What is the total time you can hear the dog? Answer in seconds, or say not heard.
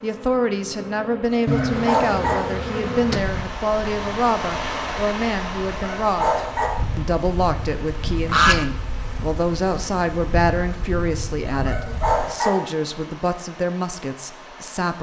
3 s.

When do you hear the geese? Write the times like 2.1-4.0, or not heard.
1.4-3.5, 8.2-8.7.